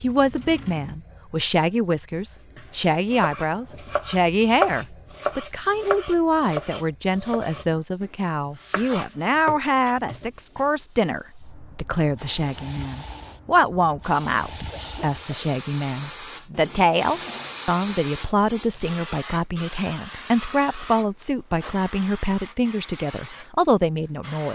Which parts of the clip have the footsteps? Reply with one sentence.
You can't hear the footsteps here.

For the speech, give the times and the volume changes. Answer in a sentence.
You can hear the speech from 0.0 to 24.5 s, at a steady volume.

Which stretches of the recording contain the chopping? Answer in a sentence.
The chopping can be heard from 2.5 to 10.7 s.